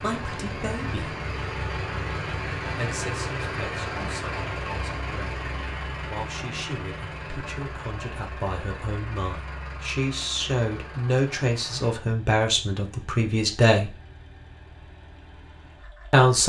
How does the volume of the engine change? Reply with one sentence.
The volume of the engine goes down.